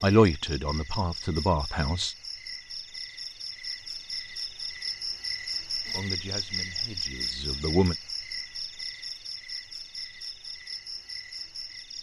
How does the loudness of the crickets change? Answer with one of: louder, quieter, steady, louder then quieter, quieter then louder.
louder then quieter.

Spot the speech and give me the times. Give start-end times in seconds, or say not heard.
0.0-2.1, 6.0-8.0.